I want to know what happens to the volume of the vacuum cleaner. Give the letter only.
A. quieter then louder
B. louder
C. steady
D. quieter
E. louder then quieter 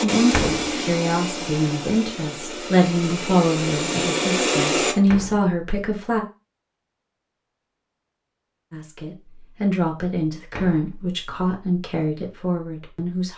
A.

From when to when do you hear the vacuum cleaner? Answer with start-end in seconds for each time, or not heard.
0.0-5.0.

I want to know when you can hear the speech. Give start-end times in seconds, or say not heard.
0.0-6.2, 8.7-13.3.